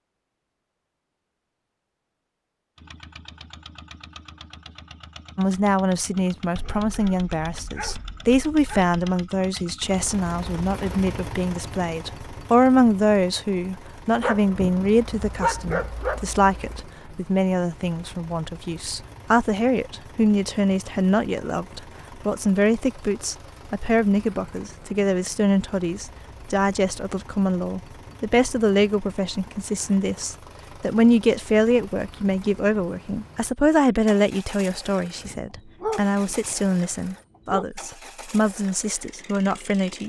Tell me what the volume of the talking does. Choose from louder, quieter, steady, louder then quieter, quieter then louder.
steady.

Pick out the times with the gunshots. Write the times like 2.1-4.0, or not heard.
not heard.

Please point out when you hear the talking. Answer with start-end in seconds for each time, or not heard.
5.3-40.0.